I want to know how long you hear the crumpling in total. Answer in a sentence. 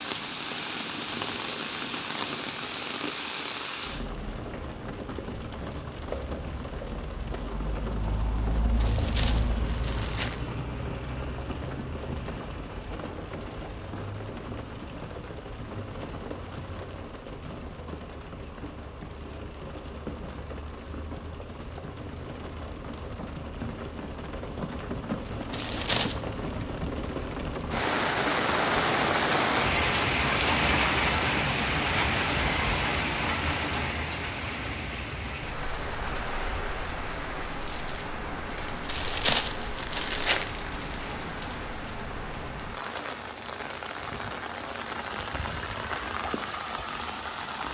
The crumpling can be heard for 4 seconds in total.